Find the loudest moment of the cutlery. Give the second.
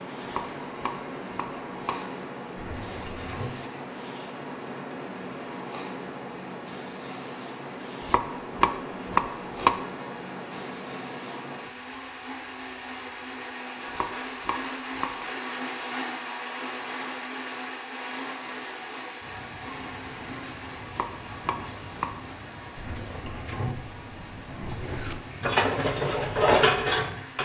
27 s.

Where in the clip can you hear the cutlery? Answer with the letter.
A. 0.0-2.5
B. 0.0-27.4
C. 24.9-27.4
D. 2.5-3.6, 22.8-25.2
C.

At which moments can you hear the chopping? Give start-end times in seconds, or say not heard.
0.2-1.9, 8.0-9.8, 13.8-15.2, 20.9-22.1.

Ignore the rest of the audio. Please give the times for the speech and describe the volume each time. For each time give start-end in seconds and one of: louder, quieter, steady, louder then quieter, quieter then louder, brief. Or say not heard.
not heard.